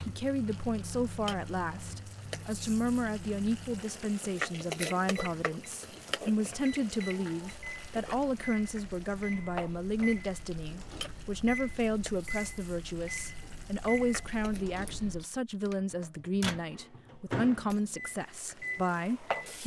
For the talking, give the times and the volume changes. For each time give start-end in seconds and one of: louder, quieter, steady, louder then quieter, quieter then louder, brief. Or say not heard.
0.1-19.6 steady.